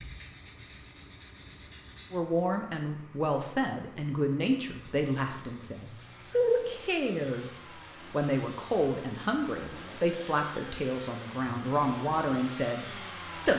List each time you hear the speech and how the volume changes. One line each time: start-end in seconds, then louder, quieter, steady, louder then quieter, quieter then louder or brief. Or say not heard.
2.1-13.5 steady.